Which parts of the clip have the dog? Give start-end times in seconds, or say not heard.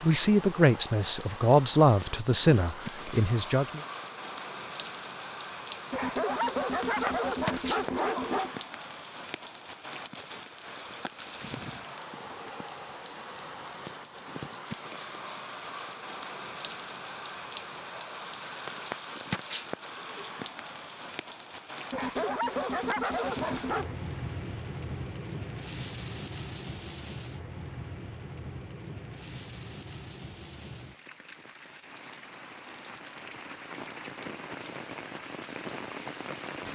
5.9-8.5, 21.9-23.9.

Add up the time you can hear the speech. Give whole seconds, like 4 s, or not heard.
4 s.